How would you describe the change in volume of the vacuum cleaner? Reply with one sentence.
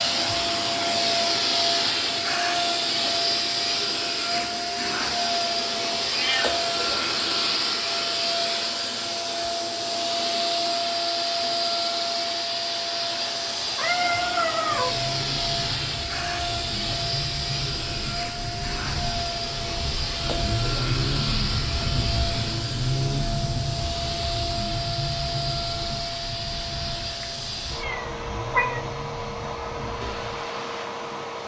The loudness of the vacuum cleaner goes down.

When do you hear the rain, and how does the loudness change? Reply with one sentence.
The rain can be heard from 13.1 to 31.4 s, getting louder then quieter.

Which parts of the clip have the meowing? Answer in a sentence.
The meowing can be heard from 6.0 to 7.8 s, from 13.7 to 14.9 s and from 27.2 to 28.9 s.